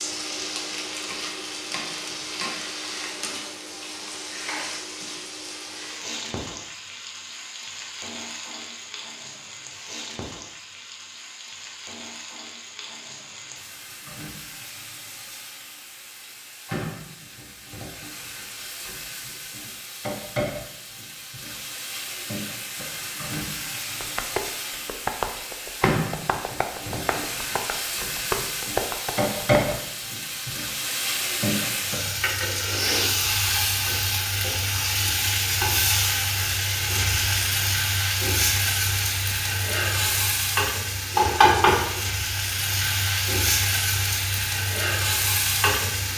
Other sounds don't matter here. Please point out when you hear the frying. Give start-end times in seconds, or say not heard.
0.0-46.1.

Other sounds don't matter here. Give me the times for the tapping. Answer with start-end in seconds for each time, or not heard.
24.0-29.8.